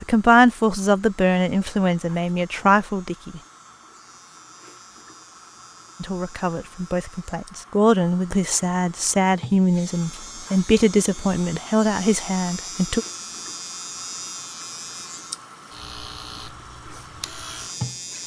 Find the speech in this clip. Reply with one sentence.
You can hear the speech from 0.0 to 3.4 s and from 6.0 to 13.1 s.